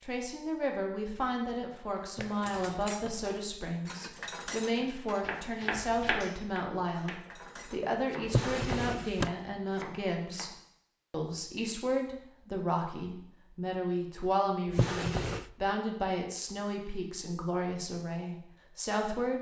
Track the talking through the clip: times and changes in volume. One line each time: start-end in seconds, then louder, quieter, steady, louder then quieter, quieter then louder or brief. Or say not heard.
0.0-19.3 steady.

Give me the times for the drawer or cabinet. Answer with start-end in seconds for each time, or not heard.
2.0-3.3, 8.2-9.3, 14.7-15.4.